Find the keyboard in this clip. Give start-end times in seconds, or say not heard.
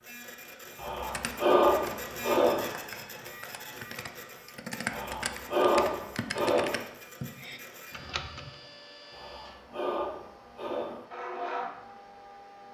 0.9-8.6.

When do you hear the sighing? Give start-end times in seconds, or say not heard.
0.8-2.7, 4.9-6.8, 9.1-11.1.